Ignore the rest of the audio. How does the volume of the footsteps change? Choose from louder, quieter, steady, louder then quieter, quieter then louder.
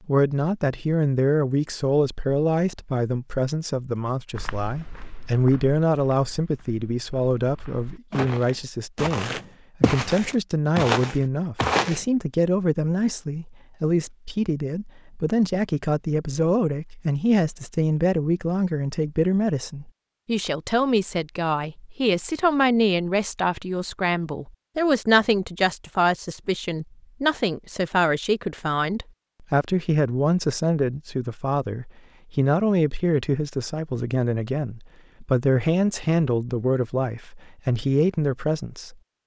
quieter then louder.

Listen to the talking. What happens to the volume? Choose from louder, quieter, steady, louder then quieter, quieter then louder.
steady.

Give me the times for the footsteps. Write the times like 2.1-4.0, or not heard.
4.3-12.0.